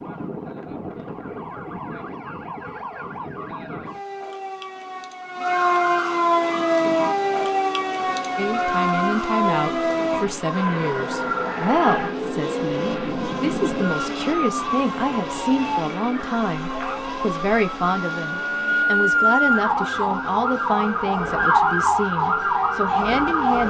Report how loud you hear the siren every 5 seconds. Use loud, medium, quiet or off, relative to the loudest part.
quiet, loud, medium, loud, loud.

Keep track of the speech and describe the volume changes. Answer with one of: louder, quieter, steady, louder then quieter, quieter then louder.
steady.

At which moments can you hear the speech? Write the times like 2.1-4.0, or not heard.
8.3-23.6.